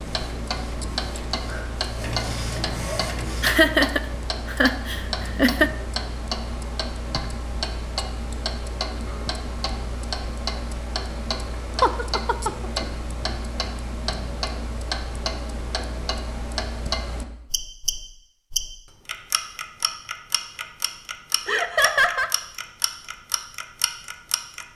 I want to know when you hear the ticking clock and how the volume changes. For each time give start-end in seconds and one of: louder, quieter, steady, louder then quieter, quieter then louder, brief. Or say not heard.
0.0-24.7 steady.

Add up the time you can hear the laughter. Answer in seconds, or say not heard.
4 s.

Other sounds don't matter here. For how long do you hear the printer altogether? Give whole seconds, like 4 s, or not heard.
4 s.